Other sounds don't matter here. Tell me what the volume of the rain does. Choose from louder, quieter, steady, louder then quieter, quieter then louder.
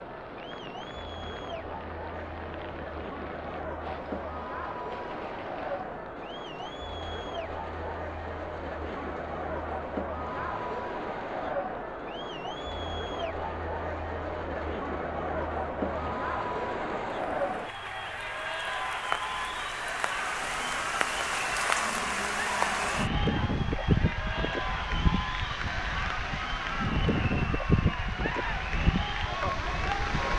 louder.